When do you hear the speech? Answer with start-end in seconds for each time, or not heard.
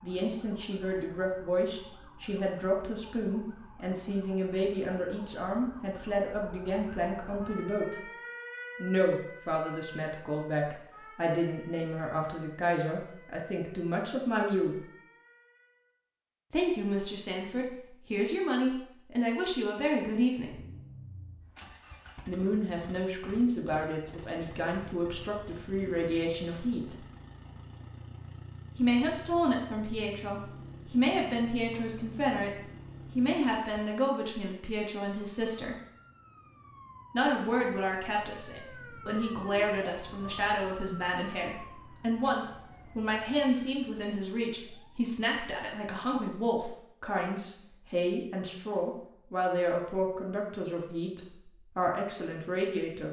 0.0-8.1, 8.8-14.8, 16.5-20.6, 22.2-27.0, 28.8-35.8, 37.1-53.0.